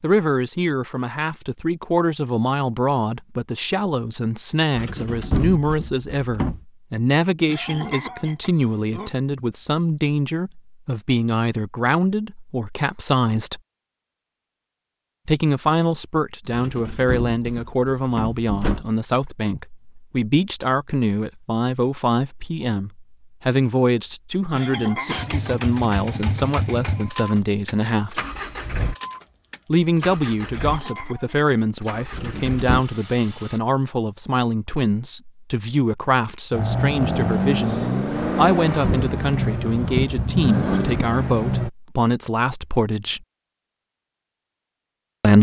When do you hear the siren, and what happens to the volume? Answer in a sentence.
The siren can't be heard in this clip.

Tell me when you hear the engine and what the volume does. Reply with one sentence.
The engine can be heard from 25.1 to 33.6 s, getting quieter; and from 36.5 to 41.7 s, at a steady volume.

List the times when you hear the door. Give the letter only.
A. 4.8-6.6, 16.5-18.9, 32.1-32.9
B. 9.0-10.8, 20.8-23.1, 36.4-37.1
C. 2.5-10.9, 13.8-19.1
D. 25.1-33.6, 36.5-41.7
A.